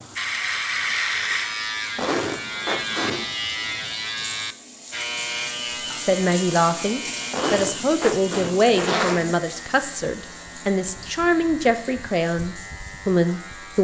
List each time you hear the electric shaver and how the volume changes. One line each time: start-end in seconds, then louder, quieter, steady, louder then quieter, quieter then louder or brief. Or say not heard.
0.0-13.8 quieter.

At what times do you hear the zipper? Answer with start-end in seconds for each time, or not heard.
1.9-3.3, 7.3-9.3.